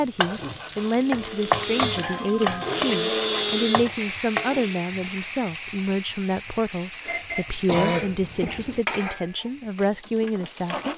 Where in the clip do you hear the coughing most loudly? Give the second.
8 s.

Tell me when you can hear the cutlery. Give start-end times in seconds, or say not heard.
not heard.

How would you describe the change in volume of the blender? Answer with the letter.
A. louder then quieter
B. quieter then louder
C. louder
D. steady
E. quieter
A.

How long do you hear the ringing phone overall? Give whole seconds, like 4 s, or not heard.
2 s.